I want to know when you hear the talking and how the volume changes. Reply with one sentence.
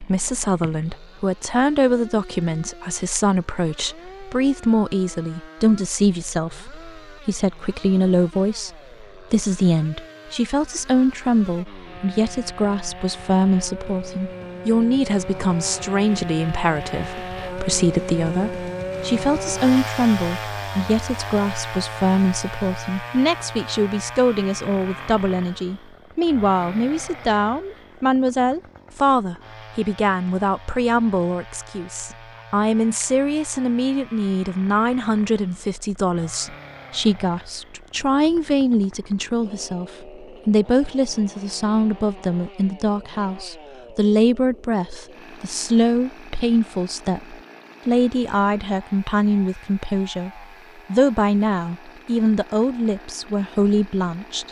You can hear the talking from 0.0 to 54.4 s, at a steady volume.